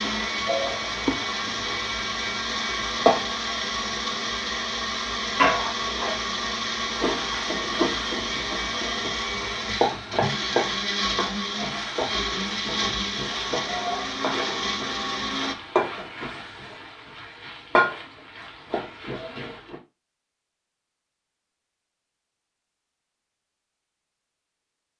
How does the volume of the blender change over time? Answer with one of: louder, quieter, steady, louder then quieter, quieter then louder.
steady.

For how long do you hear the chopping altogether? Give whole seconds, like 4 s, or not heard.
not heard.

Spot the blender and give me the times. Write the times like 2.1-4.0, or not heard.
0.0-15.6.